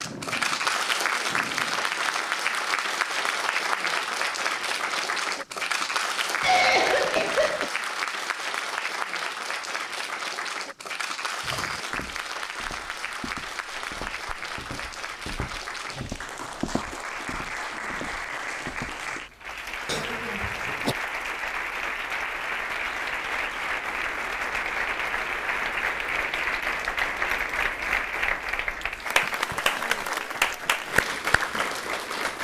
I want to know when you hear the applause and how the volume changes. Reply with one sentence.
You can hear the applause from 0.0 to 32.3 s, getting quieter then louder.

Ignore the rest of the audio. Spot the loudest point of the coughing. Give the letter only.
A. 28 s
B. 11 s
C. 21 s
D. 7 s
D.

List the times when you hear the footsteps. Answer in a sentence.
You can hear the footsteps from 11.4 to 19.1 s.